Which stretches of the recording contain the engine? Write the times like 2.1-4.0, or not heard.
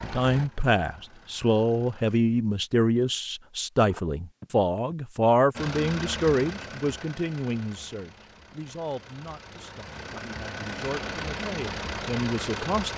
0.0-2.2, 5.5-12.9.